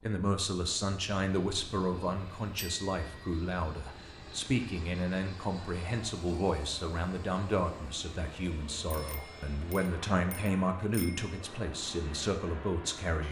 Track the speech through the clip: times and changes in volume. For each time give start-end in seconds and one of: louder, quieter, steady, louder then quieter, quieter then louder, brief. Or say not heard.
0.0-13.2 steady.